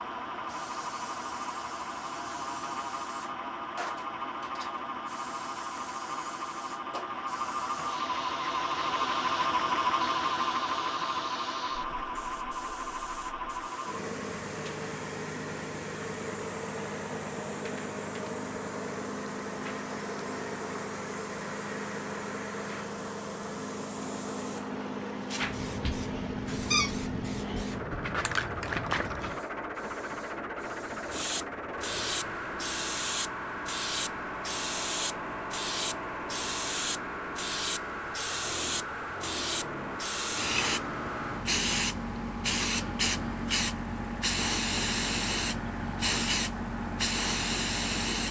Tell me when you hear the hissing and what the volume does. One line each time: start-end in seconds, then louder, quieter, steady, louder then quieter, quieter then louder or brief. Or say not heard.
0.2-48.2 louder.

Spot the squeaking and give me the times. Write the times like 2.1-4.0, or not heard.
25.8-28.1.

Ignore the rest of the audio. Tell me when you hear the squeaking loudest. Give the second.
27 s.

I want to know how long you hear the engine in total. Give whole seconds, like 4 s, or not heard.
48 s.